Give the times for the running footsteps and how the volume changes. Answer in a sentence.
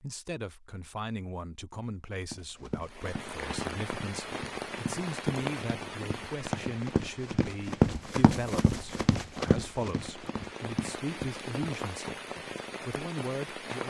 You can hear the running footsteps from 2.2 to 12.4 s, getting louder then quieter.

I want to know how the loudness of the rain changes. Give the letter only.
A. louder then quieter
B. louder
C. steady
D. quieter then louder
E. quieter
D.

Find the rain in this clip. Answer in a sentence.
You can hear the rain from 2.8 to 13.8 s.